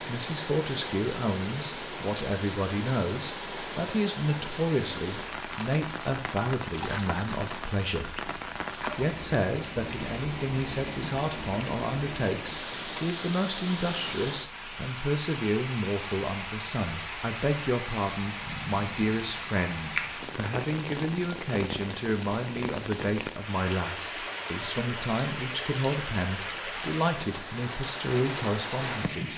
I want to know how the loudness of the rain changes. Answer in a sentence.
The loudness of the rain stays about the same.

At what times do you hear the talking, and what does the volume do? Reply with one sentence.
You can hear the talking from 0.1 to 29.3 s, at a steady volume.